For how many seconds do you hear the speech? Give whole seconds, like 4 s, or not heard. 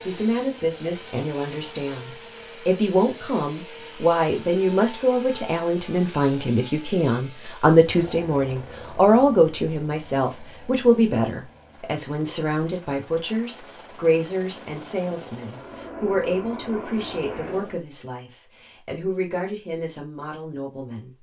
21 s.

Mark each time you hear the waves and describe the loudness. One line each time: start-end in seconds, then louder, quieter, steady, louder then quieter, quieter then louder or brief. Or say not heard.
not heard.